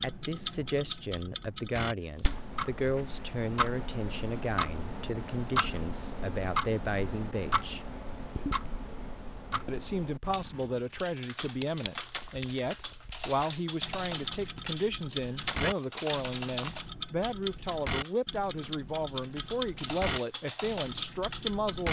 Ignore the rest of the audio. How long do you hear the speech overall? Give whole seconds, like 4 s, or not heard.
20 s.